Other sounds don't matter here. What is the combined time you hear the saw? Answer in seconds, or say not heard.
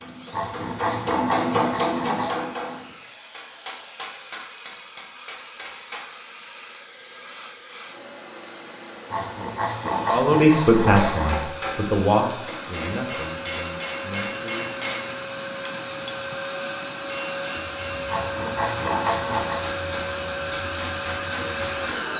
6 s.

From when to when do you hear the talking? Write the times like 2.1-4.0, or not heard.
10.1-14.8.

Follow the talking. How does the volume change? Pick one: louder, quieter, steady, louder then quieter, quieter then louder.
quieter.